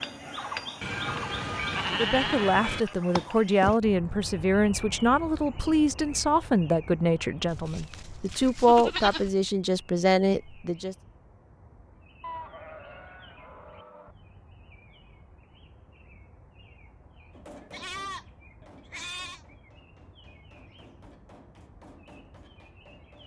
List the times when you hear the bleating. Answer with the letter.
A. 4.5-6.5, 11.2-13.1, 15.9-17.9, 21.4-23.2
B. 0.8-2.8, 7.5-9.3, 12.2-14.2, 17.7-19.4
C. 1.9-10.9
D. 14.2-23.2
B.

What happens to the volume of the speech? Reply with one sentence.
The volume of the speech stays about the same.